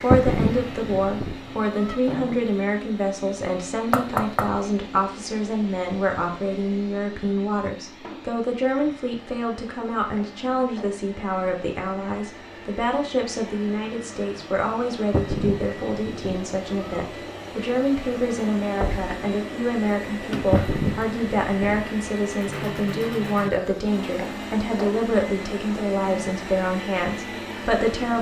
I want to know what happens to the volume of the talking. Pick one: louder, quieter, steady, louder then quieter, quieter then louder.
steady.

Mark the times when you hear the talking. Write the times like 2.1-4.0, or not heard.
0.0-28.1.